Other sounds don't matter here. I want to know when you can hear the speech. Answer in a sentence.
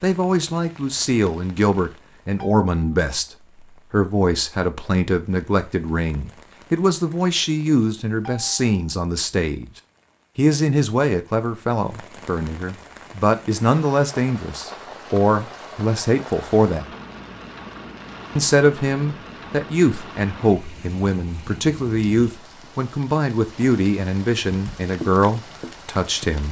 The speech can be heard from 0.0 to 9.7 s, from 10.3 to 16.9 s and from 18.4 to 26.4 s.